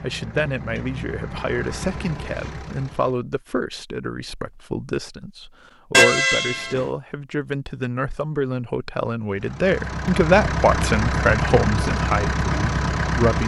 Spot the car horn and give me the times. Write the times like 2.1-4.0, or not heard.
5.9-6.9.